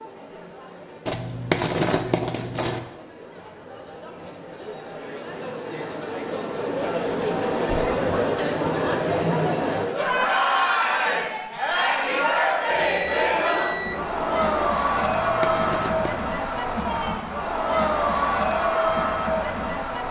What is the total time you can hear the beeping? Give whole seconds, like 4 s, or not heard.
2 s.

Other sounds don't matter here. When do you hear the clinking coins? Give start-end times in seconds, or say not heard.
1.1-2.9, 14.9-16.2.